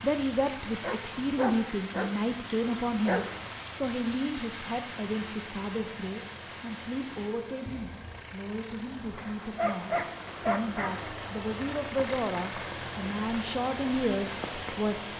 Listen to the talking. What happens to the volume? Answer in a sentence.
The volume of the talking goes down, then up.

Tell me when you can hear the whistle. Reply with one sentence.
The whistle can't be heard in this clip.